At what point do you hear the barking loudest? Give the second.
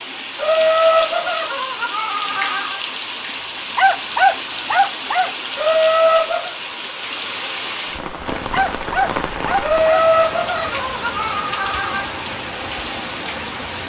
4 s.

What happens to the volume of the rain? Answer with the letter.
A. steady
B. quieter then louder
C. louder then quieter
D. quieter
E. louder
A.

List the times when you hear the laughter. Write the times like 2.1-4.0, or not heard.
0.3-2.8, 5.5-6.5, 9.6-12.1.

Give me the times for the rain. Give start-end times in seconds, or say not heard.
0.0-13.8.